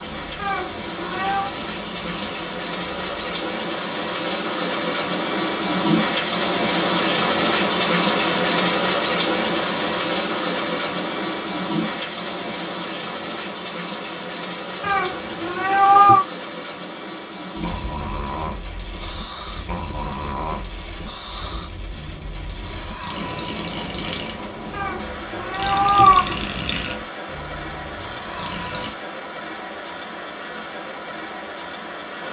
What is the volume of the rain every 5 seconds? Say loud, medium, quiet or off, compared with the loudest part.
medium, loud, medium, quiet, quiet, quiet, quiet.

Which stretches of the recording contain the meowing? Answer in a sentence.
The meowing can be heard from 0.3 to 1.5 s, from 14.8 to 16.2 s and from 24.7 to 26.4 s.